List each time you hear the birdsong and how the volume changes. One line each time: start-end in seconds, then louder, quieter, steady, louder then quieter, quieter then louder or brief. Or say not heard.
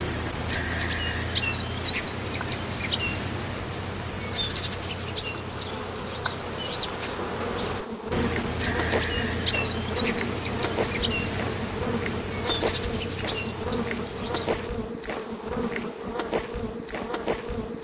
0.0-14.7 steady.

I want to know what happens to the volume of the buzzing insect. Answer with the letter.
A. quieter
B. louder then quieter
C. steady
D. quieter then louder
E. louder
E.